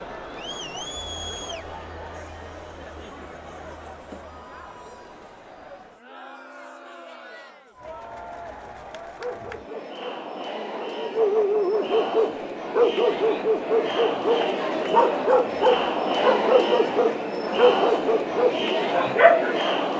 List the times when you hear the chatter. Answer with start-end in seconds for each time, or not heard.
0.0-19.9.